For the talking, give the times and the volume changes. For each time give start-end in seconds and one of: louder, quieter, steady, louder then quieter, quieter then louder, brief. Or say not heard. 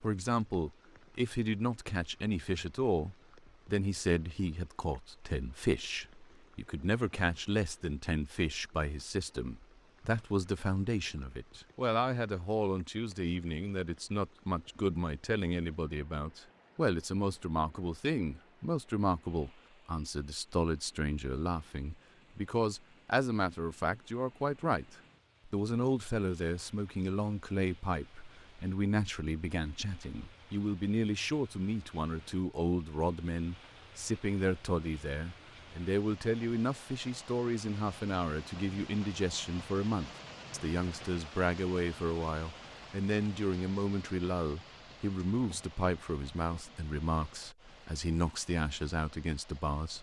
0.0-49.9 steady.